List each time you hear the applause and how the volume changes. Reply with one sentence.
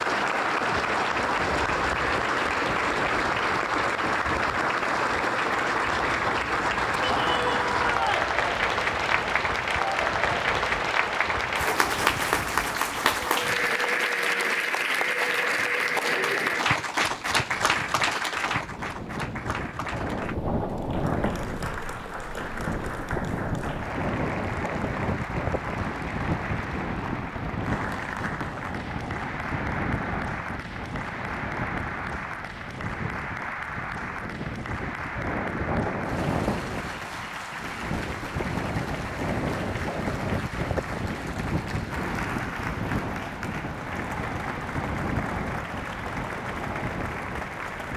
You can hear the applause from 0.0 to 47.9 s, getting quieter.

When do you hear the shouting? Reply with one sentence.
The shouting can be heard from 7.0 to 8.3 s.